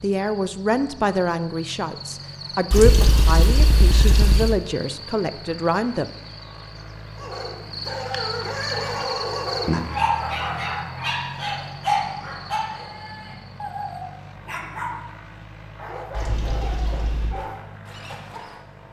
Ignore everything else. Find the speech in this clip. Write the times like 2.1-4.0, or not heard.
0.0-6.1.